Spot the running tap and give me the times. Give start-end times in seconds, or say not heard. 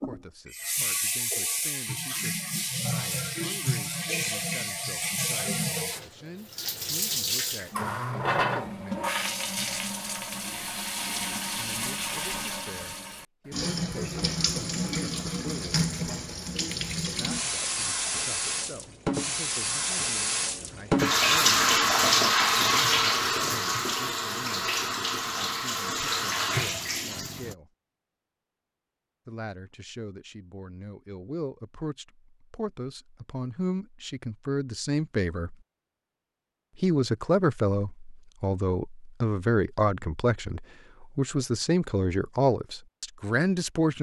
0.0-27.6.